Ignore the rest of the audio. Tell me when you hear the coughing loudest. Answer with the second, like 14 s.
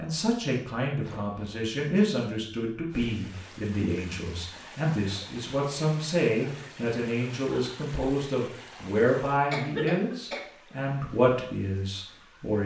10 s.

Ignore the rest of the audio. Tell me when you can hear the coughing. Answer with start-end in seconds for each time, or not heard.
1.1-1.6, 9.5-10.4.